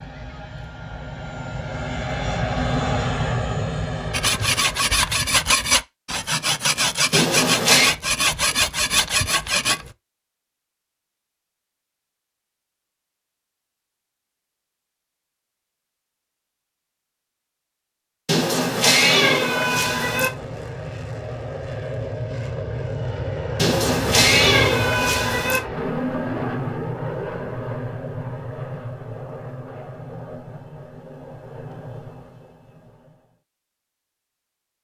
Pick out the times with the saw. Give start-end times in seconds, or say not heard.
4.1-9.9.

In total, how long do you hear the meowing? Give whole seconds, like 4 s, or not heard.
5 s.